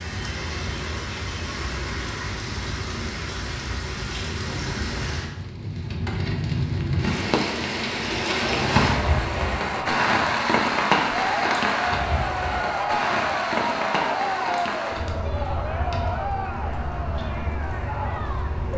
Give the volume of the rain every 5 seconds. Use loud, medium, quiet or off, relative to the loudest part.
medium, loud, loud, medium.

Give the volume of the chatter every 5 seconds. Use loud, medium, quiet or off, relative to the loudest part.
off, medium, loud, medium.